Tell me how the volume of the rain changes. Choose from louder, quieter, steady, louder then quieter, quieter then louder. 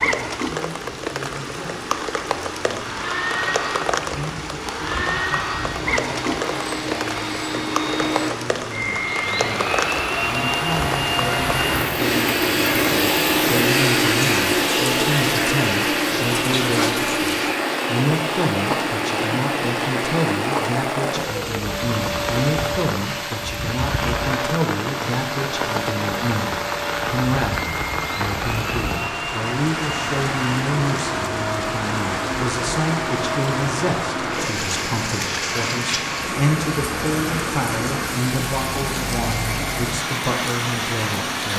steady.